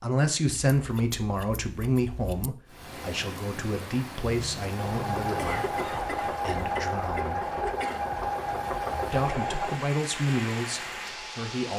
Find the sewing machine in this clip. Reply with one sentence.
The sewing machine can be heard from 4.6 to 11.7 s.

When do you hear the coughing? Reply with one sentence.
The coughing can be heard from 5.3 to 8.1 s.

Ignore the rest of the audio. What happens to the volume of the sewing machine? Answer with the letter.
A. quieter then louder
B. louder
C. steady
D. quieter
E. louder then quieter
D.